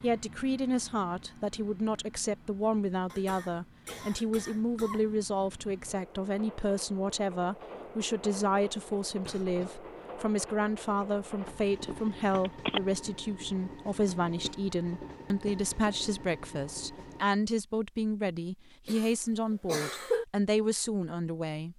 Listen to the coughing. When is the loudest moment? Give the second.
20 s.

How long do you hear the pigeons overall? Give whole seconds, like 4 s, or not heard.
not heard.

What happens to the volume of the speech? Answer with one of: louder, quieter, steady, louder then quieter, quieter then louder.
steady.